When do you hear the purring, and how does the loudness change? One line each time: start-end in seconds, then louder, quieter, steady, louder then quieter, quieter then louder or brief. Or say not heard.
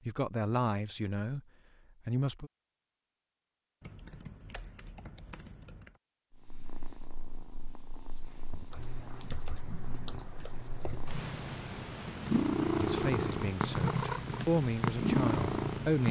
6.3-16.0 louder.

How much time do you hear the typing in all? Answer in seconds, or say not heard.
5 s.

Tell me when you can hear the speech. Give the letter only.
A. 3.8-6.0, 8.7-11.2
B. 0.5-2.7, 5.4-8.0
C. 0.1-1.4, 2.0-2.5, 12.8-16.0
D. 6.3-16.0
C.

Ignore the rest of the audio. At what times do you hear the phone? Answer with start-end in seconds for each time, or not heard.
not heard.